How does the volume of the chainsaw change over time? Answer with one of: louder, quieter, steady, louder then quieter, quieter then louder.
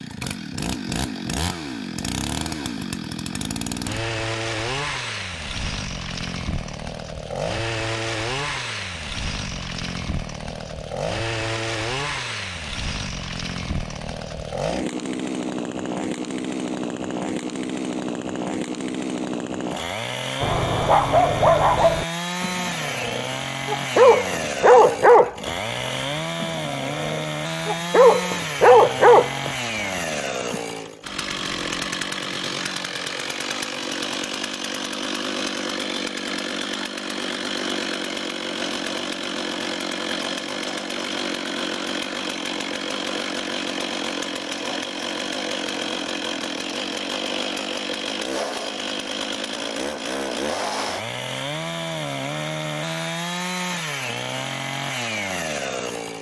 steady.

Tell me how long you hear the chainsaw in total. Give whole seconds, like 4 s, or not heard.
56 s.